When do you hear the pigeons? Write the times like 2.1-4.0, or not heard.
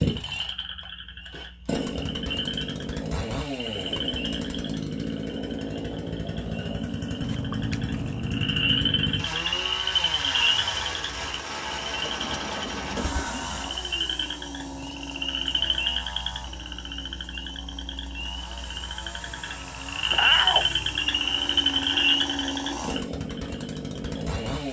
12.0-13.8.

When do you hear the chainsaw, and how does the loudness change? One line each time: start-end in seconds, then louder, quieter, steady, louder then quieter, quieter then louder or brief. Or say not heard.
0.0-24.6 quieter then louder.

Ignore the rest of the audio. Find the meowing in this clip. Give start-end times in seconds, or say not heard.
7.2-9.0, 20.1-20.8.